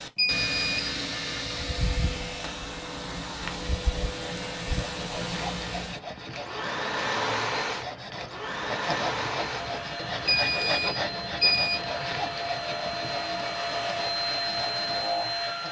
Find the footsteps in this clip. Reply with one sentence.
You can't hear the footsteps here.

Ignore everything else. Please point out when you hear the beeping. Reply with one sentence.
The beeping can be heard from 0.1 to 1.0 s and from 10.2 to 11.8 s.